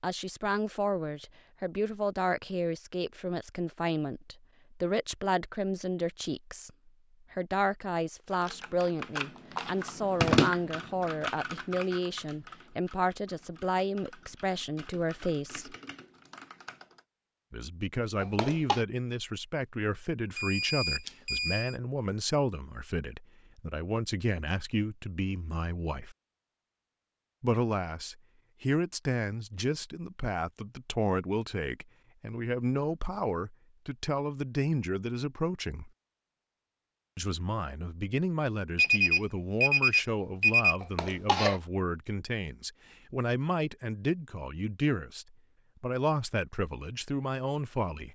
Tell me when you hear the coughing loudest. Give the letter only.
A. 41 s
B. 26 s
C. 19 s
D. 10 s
A.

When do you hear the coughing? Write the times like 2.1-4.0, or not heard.
18.2-18.9, 40.8-41.6.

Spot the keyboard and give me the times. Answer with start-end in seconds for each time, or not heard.
8.3-17.1.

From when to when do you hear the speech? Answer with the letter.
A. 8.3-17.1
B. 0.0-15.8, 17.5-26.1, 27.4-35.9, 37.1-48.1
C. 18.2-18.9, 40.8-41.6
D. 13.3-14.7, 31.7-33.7
B.